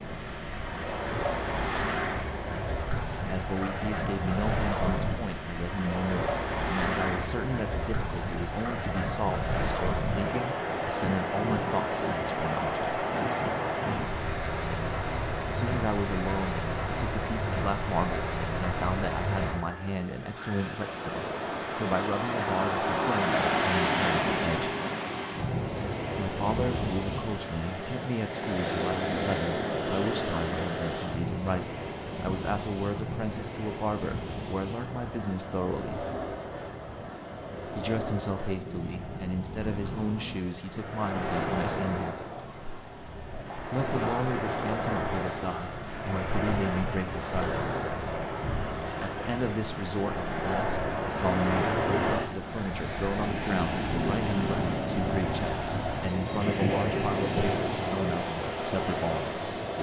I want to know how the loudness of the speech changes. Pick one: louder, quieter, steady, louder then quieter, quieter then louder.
steady.